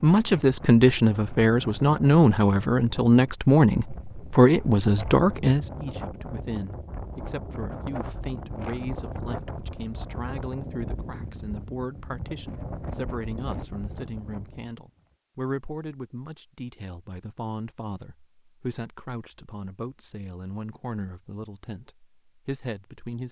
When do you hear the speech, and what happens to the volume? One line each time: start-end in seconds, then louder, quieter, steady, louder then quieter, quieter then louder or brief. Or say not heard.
0.0-23.2 quieter.